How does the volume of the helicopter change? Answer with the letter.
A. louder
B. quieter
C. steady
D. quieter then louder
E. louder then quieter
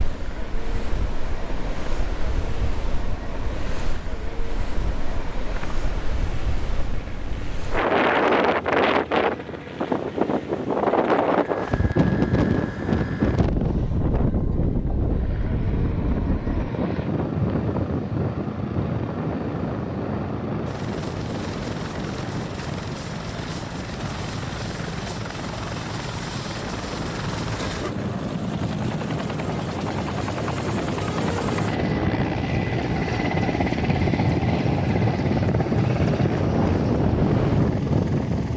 A.